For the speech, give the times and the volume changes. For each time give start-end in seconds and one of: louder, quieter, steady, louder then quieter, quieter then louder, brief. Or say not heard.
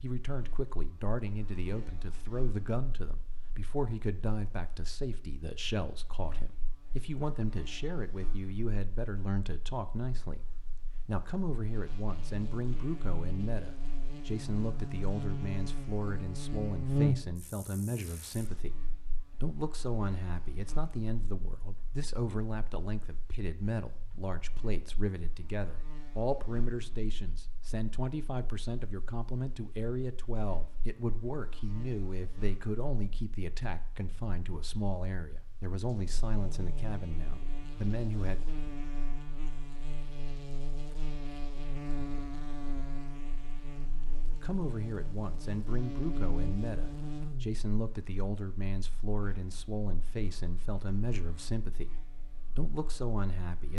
0.0-38.4 steady
44.4-53.7 steady.